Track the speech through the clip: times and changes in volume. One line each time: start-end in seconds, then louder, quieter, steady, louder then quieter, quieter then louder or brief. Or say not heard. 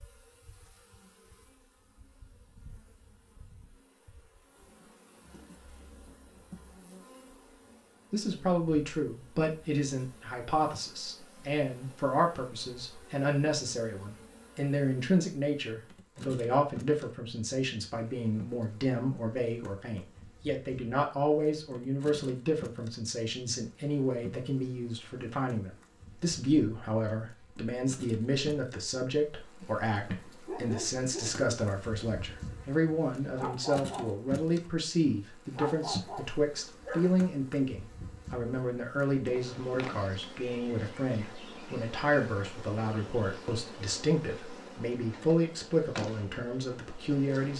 8.1-47.5 steady.